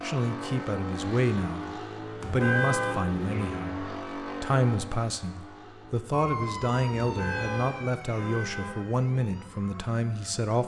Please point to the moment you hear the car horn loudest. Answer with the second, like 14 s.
3 s.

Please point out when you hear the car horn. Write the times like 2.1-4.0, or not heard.
2.2-3.5, 7.0-8.8.